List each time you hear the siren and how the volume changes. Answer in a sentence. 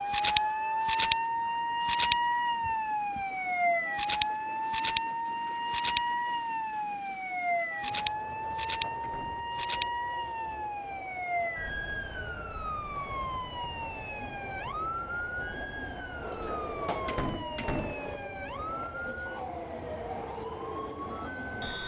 You can hear the siren from 0.0 to 21.8 s, getting quieter.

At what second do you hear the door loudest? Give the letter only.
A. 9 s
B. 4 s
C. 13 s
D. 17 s
D.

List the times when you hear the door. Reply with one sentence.
You can hear the door from 2.6 to 3.3 s, from 8.2 to 9.4 s and from 16.2 to 18.2 s.